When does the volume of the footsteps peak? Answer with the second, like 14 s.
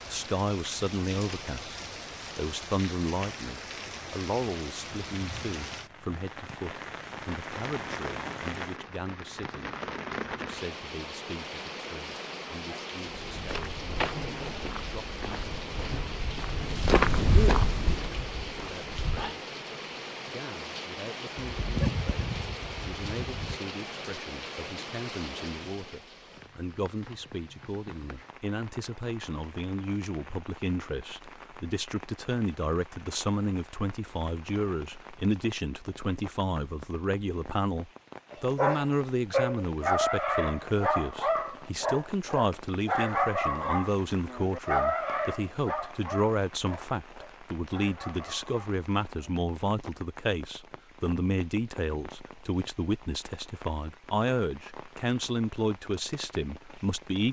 17 s.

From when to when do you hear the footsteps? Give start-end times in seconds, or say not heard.
13.1-19.4.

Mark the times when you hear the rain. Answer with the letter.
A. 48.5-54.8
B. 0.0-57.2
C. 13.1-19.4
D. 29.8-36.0
B.